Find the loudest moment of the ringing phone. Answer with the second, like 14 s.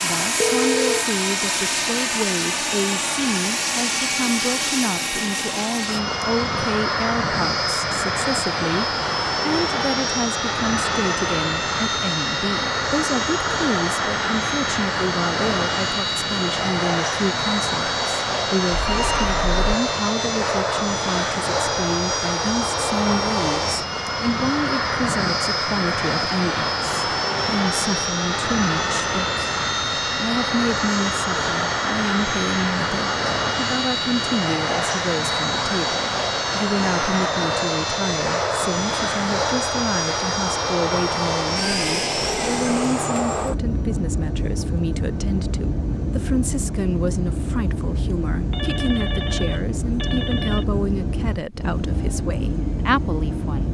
1 s.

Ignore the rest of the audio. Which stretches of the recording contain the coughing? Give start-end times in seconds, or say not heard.
not heard.